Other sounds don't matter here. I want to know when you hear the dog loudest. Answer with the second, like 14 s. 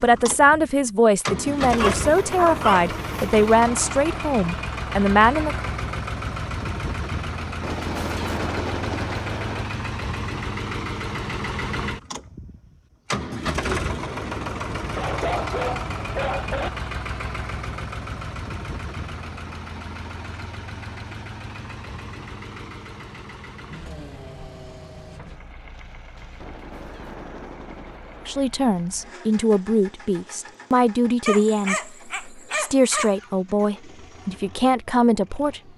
3 s.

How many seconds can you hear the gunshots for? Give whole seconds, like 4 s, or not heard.
4 s.